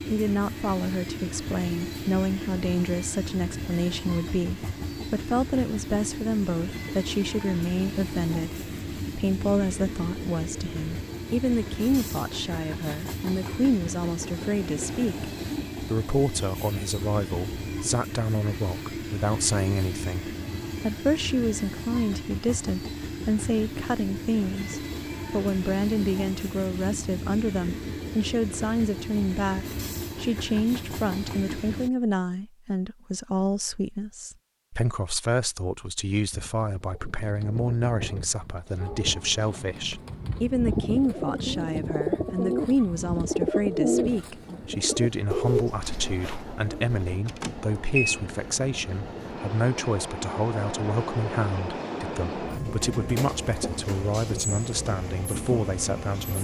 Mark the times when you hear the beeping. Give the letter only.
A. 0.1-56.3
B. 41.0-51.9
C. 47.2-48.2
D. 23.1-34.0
C.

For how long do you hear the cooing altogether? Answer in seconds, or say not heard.
11 s.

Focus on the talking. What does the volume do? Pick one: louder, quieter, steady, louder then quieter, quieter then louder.
steady.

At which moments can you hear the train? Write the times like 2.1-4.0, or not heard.
0.0-31.9, 38.8-56.3.